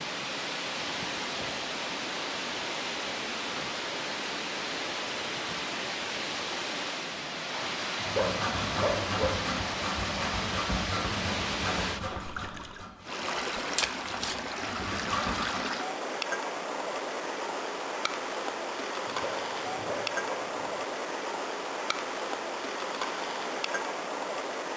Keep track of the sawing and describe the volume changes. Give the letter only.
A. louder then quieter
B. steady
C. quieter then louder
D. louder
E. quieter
C.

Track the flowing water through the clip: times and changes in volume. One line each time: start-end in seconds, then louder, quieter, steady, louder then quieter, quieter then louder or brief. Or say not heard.
0.0-24.7 steady.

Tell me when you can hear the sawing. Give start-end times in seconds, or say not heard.
8.1-15.7.